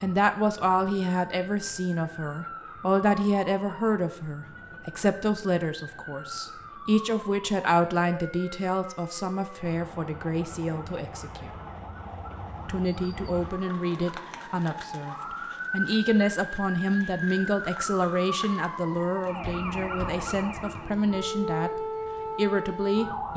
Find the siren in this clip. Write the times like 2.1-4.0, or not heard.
0.0-23.3.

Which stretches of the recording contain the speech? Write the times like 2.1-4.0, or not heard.
0.0-11.5, 12.7-23.3.